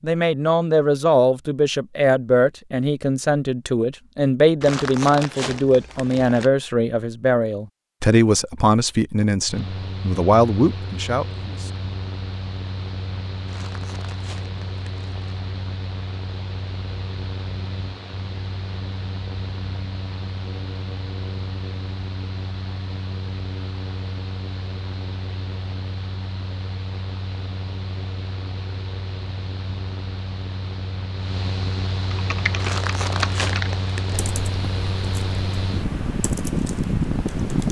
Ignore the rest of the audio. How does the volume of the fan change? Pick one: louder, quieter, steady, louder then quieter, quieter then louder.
louder.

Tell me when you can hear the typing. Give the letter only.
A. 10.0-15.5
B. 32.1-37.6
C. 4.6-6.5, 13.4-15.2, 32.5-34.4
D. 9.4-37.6
B.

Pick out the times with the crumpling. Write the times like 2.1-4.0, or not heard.
4.6-6.5, 13.4-15.2, 32.5-34.4.